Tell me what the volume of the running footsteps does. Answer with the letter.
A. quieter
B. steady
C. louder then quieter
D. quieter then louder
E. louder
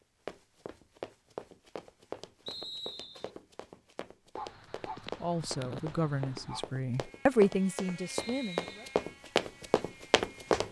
D.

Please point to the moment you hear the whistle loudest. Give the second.
3 s.